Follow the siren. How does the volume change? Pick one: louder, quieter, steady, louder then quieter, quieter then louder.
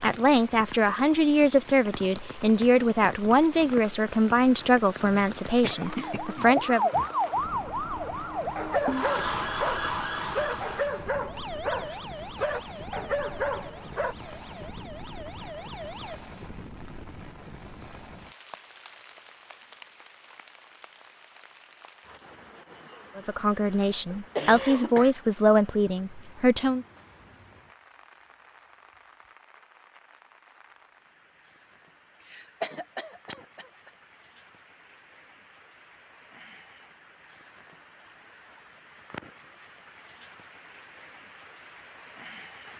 quieter.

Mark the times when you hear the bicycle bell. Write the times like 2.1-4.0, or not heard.
not heard.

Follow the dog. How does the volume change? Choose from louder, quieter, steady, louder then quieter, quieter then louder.
steady.